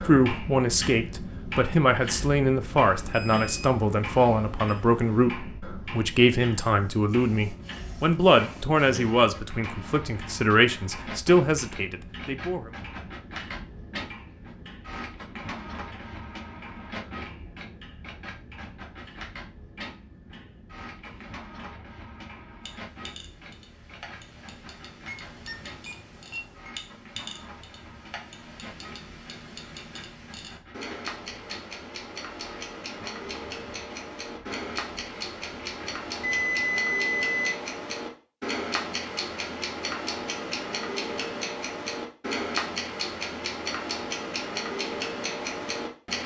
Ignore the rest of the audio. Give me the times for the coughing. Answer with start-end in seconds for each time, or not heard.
not heard.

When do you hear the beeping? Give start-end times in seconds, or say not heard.
2.7-5.3, 25.1-26.8, 36.2-37.5.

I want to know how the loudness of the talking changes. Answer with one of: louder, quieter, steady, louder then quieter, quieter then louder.
steady.